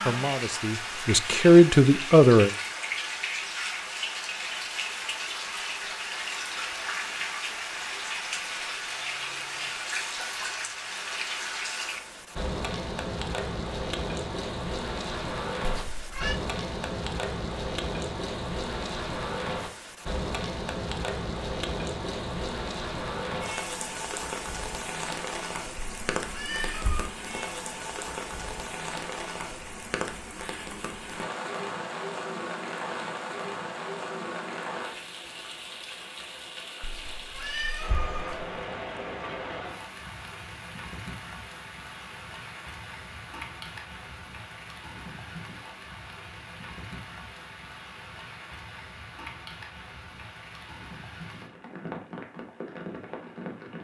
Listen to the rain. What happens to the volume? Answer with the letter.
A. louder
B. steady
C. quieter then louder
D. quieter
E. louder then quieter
D.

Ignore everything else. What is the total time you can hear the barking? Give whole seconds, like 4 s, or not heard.
not heard.